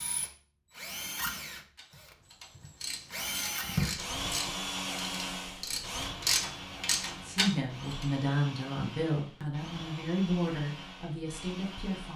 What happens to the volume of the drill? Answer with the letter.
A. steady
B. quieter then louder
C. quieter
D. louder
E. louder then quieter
E.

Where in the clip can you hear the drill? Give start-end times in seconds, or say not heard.
0.0-12.1.